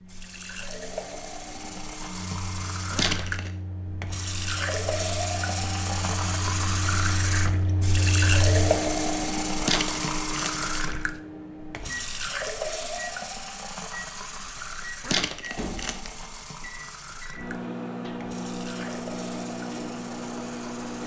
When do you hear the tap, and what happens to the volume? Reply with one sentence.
The tap can be heard from 0.0 to 21.0 s, getting louder then quieter.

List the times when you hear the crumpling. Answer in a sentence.
The crumpling can be heard from 2.9 to 3.5 s, from 9.6 to 10.9 s and from 15.0 to 16.1 s.